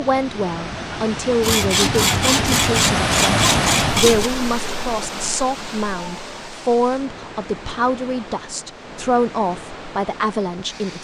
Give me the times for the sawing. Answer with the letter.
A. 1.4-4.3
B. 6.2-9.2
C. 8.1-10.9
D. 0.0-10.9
A.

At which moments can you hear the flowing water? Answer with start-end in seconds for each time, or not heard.
0.0-10.9.